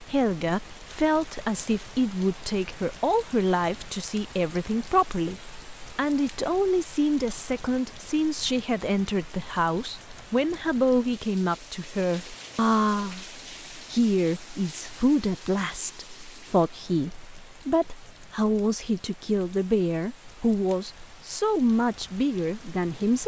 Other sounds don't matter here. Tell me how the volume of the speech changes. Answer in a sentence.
The volume of the speech stays about the same.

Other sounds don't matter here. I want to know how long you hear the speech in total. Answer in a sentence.
The speech can be heard for 23 seconds in total.